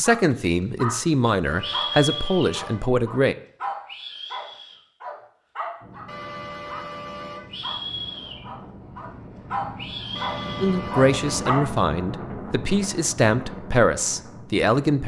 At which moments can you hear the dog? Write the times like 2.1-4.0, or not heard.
0.0-0.9, 1.6-6.8, 7.5-11.6.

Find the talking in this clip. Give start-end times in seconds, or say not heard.
0.0-3.4, 10.6-15.0.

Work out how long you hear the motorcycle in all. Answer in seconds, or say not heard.
not heard.